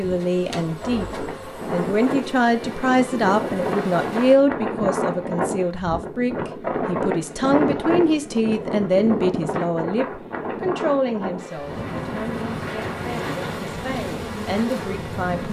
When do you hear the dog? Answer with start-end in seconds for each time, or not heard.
not heard.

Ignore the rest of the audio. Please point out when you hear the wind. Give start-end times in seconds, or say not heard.
0.0-15.4.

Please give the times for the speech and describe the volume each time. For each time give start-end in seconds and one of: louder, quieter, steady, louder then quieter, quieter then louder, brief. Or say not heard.
0.0-15.4 quieter.